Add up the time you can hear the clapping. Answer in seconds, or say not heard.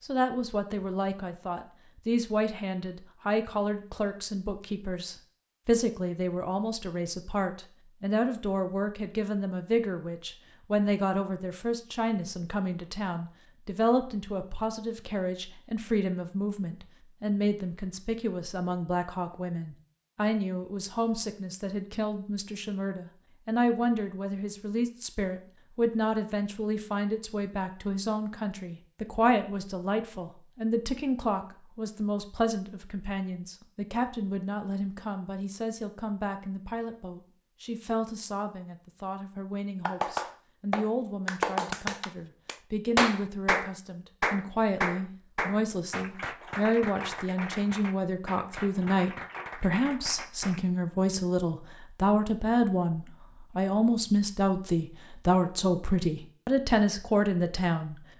11 s.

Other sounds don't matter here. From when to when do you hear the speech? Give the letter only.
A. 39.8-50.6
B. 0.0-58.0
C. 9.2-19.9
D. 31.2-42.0
B.